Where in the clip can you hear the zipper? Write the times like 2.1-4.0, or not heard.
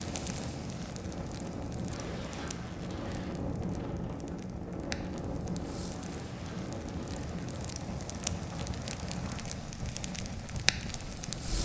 1.9-3.4, 6.0-7.5.